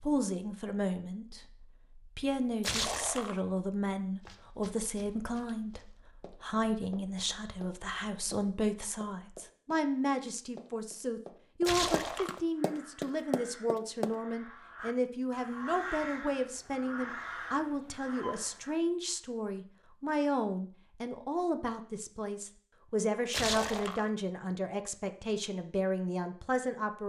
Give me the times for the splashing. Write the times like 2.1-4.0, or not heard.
2.6-3.4, 11.7-12.4, 23.3-24.1.